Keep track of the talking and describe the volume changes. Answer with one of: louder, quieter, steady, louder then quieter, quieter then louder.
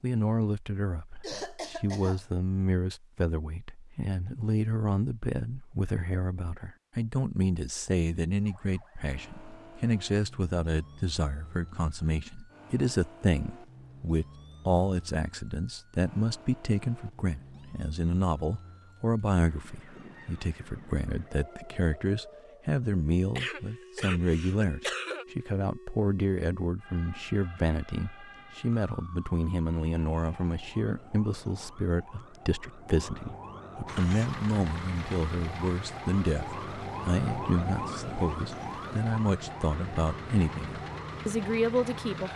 steady.